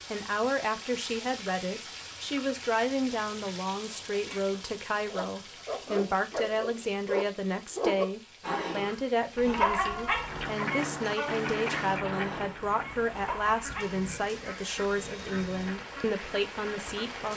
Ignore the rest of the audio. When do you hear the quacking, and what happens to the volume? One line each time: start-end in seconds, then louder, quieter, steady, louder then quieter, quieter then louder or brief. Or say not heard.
10.1-17.1 quieter.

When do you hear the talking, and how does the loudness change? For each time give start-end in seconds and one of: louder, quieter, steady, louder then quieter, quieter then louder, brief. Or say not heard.
0.1-17.3 steady.